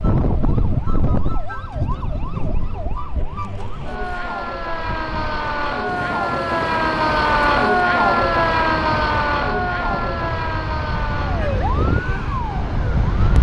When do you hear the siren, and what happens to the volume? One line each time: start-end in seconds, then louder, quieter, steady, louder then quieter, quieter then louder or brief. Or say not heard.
0.0-13.3 louder then quieter.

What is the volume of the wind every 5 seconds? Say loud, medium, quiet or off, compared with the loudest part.
loud, medium, loud.